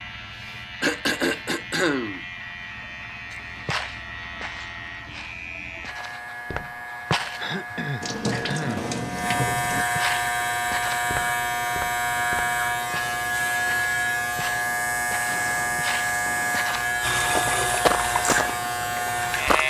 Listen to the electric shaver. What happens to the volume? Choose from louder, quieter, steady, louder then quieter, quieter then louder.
louder.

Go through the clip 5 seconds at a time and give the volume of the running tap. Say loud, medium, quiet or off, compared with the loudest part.
off, loud, off, loud.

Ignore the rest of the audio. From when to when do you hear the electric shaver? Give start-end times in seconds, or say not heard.
0.0-19.6.